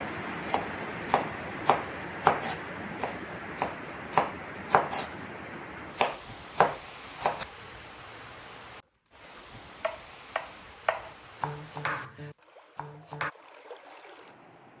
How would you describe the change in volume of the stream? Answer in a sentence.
The loudness of the stream goes down.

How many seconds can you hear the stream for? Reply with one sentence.
The stream can be heard for 15 seconds in total.